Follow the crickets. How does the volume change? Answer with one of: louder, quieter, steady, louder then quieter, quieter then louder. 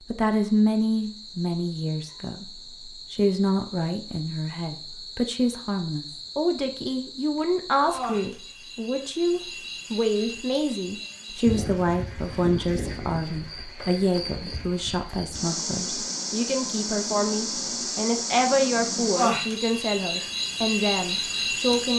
louder.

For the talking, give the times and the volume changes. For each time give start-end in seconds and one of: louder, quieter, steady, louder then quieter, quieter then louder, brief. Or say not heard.
0.1-21.9 steady.